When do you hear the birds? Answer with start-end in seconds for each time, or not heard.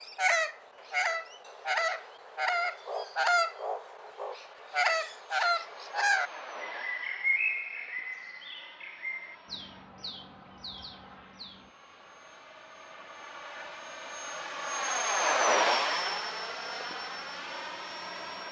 0.0-11.7.